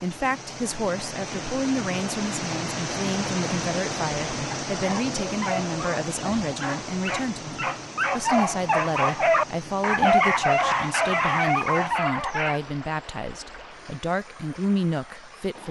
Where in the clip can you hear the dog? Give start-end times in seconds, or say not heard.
4.8-12.6.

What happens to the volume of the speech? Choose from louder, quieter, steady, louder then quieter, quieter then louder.
steady.